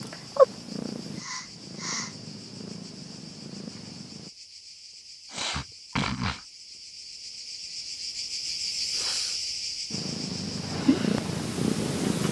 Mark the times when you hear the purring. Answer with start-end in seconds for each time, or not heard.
0.0-4.3, 9.9-12.2.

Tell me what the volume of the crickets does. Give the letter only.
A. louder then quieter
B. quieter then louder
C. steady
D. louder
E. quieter
D.